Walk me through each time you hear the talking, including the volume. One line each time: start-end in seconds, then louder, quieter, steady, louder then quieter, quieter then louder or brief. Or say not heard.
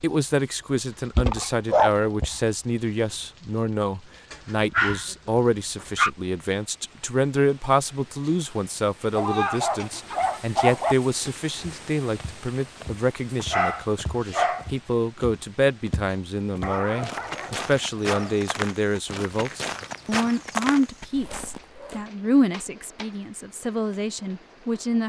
0.0-25.0 steady.